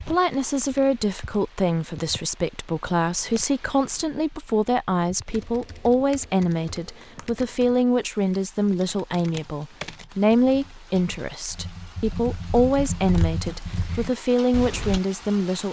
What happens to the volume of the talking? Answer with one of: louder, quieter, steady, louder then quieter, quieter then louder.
steady.